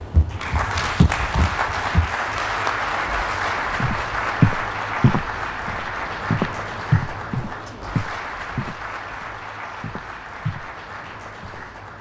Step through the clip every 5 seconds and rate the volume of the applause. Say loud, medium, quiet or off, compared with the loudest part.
loud, medium, quiet.